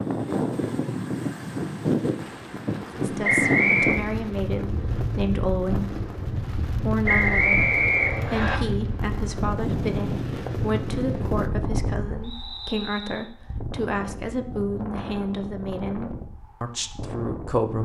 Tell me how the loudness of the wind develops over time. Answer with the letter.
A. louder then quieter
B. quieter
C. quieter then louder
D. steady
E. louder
B.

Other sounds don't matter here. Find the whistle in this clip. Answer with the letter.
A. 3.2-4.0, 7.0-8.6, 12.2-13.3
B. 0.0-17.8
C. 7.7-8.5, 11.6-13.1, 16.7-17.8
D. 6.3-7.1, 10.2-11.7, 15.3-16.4
A.